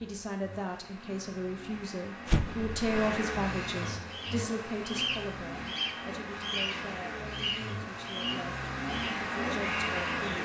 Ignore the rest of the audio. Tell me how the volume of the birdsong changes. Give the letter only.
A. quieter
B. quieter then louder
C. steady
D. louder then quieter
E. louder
A.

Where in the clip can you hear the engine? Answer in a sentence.
You can hear the engine from 0.0 to 10.4 s.